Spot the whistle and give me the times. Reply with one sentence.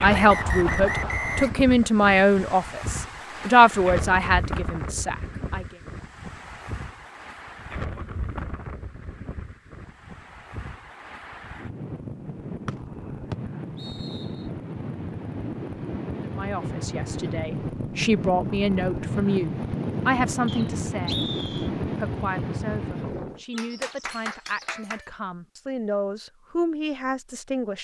The whistle can be heard from 0.1 to 1.6 s, from 12.7 to 14.2 s and from 20.4 to 21.7 s.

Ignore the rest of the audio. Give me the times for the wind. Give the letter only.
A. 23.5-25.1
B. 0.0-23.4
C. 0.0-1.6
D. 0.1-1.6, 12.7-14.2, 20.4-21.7
B.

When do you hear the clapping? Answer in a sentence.
The clapping can be heard from 23.5 to 25.1 s.